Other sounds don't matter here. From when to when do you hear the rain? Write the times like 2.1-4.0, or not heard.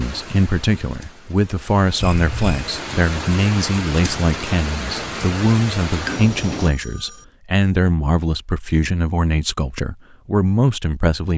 0.0-6.7.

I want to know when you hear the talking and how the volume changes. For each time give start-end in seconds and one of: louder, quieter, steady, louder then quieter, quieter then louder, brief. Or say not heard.
0.0-11.3 steady.